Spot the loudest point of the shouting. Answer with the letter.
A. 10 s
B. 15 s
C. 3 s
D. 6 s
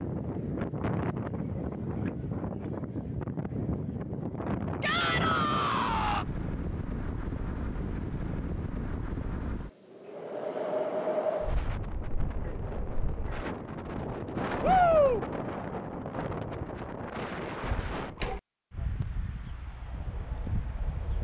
B.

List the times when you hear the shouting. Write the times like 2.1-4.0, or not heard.
4.8-6.2, 14.6-15.2.